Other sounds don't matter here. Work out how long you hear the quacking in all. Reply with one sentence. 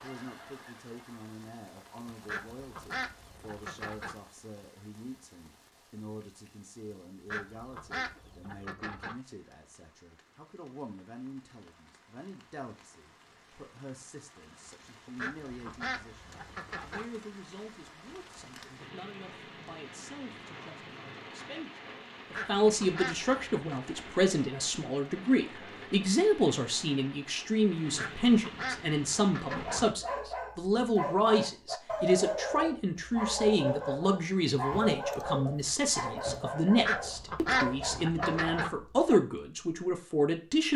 The quacking can be heard for 11 seconds in total.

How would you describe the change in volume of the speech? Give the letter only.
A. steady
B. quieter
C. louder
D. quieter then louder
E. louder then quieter
C.